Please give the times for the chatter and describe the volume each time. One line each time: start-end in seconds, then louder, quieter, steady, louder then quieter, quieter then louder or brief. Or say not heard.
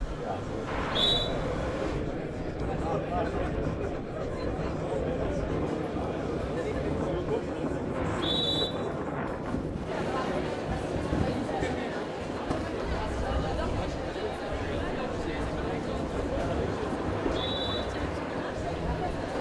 0.0-19.3 steady.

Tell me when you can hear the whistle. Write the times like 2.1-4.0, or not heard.
0.7-1.3, 7.9-8.7, 17.2-17.8.